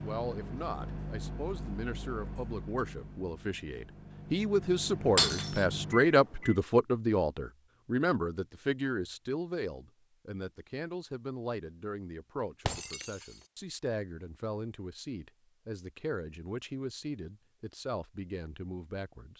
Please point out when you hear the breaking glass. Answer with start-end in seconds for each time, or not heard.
5.2-5.7, 12.7-13.2.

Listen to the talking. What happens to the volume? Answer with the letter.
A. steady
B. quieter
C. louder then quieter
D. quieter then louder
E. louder
C.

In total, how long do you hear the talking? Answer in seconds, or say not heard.
19 s.